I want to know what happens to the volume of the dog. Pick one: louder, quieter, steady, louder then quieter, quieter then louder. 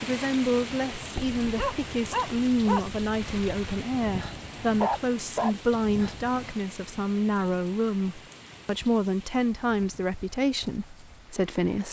quieter then louder.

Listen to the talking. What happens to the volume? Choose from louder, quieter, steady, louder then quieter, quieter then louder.
steady.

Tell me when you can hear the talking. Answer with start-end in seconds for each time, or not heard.
0.0-11.8.